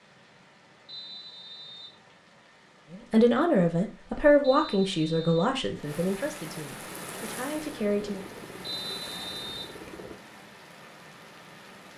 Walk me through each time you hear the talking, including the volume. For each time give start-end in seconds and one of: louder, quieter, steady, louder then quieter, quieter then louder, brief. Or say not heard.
2.9-8.2 quieter.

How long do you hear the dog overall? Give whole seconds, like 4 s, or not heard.
not heard.